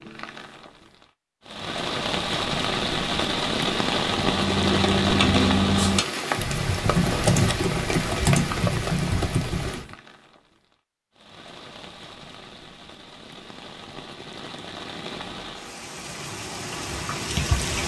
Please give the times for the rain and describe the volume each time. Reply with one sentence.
The rain can be heard from 0.0 to 17.8 s, getting quieter then louder.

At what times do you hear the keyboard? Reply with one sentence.
You can hear the keyboard from 4.2 to 9.9 s.